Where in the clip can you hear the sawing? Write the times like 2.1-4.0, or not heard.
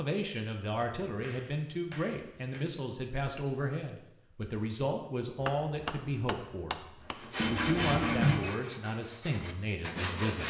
7.0-10.4.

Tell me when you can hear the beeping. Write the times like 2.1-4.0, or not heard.
7.3-8.5.